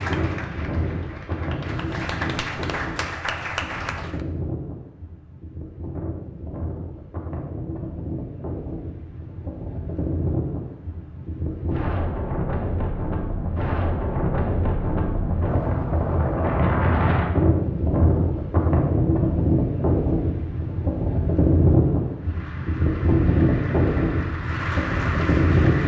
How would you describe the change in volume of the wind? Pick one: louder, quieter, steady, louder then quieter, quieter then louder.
louder.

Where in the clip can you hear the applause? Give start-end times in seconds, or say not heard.
0.0-4.2, 22.1-25.8.